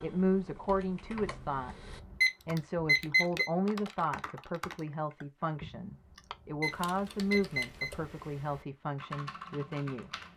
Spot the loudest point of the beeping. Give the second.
3 s.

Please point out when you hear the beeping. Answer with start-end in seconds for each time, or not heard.
1.1-3.5, 5.6-7.9.